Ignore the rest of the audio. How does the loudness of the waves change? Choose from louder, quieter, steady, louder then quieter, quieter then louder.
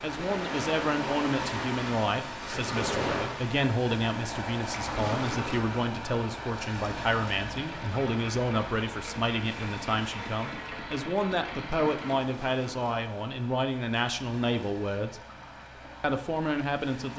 quieter.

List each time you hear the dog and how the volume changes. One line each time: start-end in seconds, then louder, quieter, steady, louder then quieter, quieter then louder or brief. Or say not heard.
not heard.